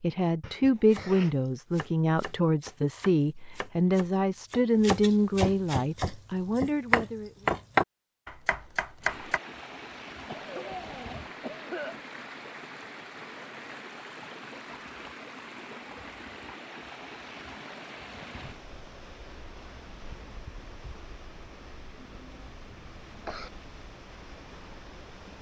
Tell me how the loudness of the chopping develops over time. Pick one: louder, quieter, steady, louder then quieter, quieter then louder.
louder.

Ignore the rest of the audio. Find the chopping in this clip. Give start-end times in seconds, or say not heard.
0.9-9.4.